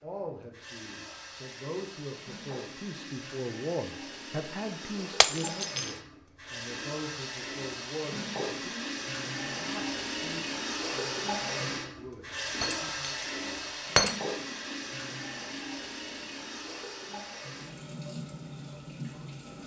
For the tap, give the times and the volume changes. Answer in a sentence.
You can hear the tap from 0.0 to 19.6 s, getting louder then quieter.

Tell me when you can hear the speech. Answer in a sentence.
The speech can be heard from 0.0 to 13.2 s.